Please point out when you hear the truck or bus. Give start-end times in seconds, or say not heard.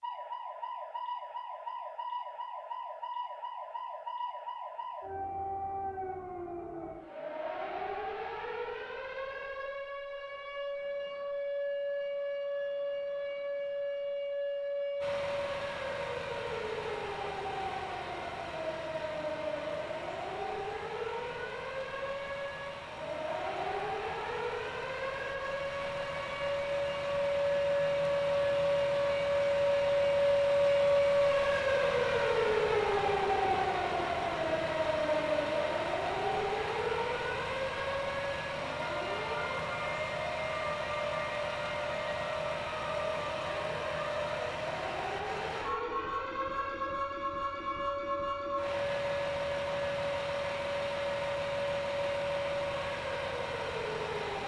15.0-54.4.